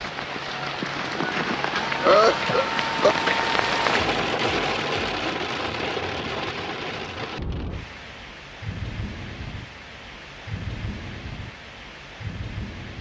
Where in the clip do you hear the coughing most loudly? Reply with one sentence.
The volume of the coughing peaks at 2 seconds.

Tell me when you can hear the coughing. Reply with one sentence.
The coughing can be heard from 0.5 to 3.1 s.